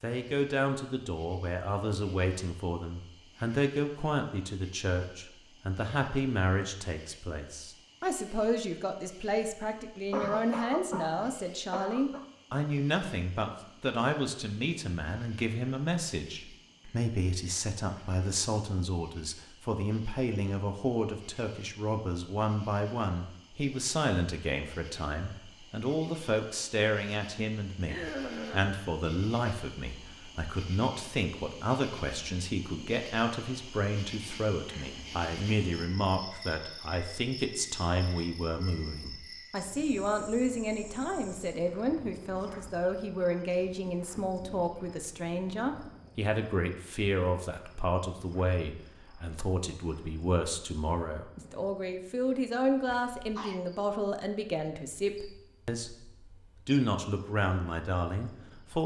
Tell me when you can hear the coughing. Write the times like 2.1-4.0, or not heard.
10.1-12.2, 27.9-28.8, 53.1-53.6.